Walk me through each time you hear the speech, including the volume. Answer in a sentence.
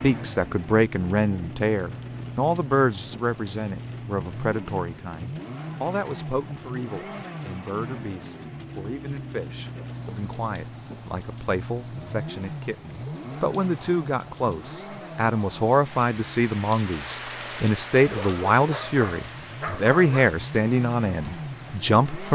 The speech can be heard from 0.0 to 22.3 s, getting quieter then louder.